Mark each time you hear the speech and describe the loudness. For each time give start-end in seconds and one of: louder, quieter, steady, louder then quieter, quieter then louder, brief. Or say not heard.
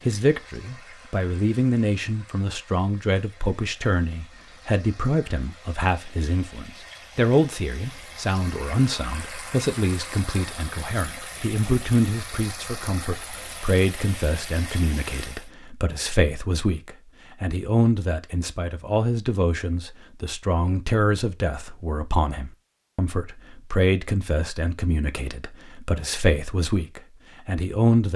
0.1-28.1 steady.